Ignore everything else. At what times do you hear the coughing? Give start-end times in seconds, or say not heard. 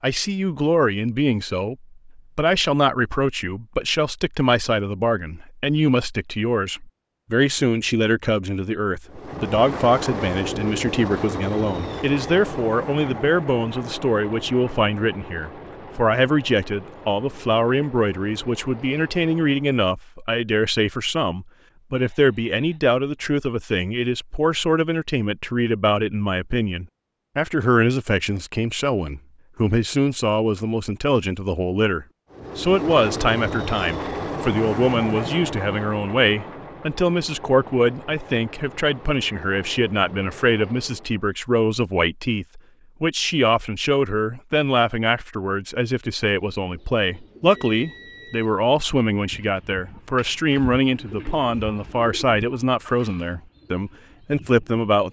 not heard.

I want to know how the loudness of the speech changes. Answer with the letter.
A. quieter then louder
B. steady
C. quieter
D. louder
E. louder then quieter
B.